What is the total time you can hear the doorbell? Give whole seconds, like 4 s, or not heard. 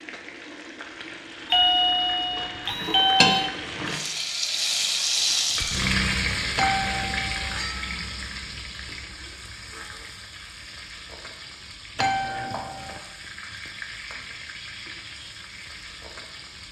4 s.